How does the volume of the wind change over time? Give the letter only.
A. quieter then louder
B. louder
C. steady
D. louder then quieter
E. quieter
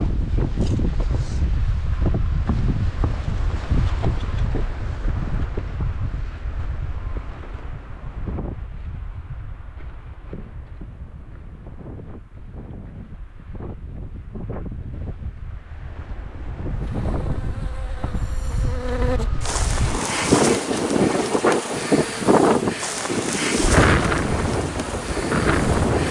A.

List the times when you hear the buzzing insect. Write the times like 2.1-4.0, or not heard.
16.7-26.0.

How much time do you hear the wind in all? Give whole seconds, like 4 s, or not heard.
26 s.